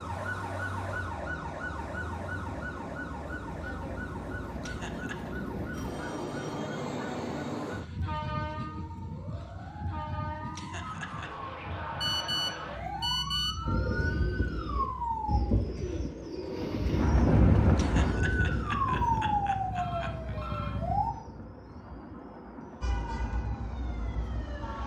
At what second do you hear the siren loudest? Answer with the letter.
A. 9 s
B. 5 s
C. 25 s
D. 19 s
D.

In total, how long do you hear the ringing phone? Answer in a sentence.
The ringing phone can be heard for 4 seconds in total.